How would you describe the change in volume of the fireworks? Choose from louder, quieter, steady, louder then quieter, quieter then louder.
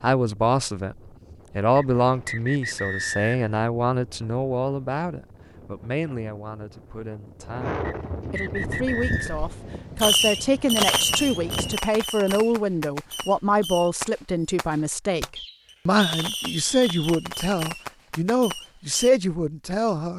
quieter.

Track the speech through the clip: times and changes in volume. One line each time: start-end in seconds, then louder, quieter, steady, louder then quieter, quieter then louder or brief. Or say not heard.
0.0-0.9 brief
1.6-20.1 quieter then louder.